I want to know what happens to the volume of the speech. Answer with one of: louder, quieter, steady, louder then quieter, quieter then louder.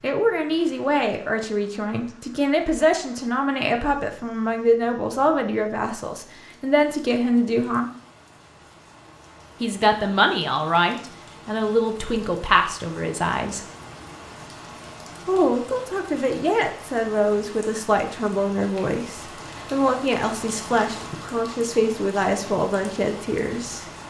steady.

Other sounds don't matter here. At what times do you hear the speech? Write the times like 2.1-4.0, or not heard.
0.0-7.9, 9.6-13.7, 15.2-23.9.